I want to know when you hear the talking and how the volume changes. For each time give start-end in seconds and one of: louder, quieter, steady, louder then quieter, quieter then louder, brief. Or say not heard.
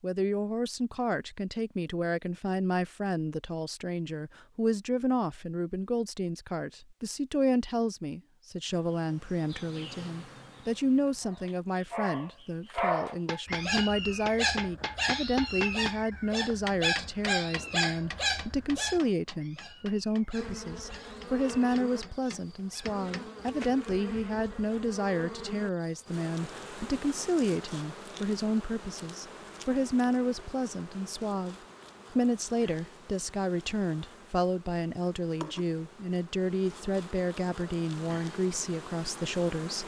0.0-39.8 steady.